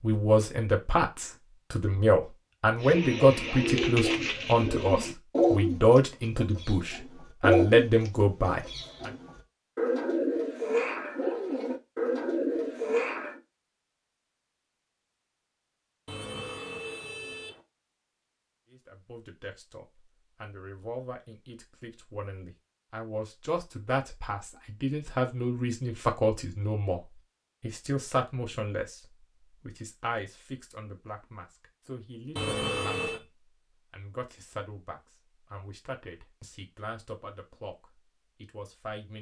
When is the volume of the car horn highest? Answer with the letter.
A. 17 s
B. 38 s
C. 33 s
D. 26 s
C.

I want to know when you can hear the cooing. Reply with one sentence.
You can hear the cooing from 2.8 to 13.3 s.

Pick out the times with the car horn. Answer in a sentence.
The car horn can be heard from 16.1 to 17.6 s and from 32.4 to 33.2 s.